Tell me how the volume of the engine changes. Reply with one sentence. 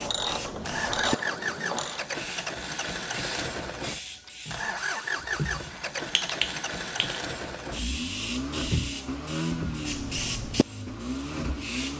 The loudness of the engine stays about the same.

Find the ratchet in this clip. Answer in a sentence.
You can hear the ratchet from 0.0 to 2.0 s.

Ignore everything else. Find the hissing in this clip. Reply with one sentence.
You can hear the hissing from 0.0 to 11.9 s.